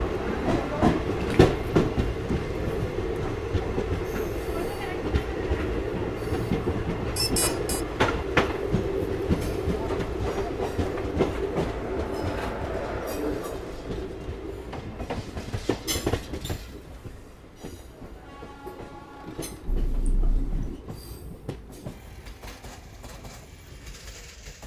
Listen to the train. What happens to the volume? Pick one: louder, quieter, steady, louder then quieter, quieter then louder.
quieter.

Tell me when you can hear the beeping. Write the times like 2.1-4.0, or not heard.
7.2-7.8, 19.6-20.8.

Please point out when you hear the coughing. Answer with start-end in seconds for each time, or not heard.
not heard.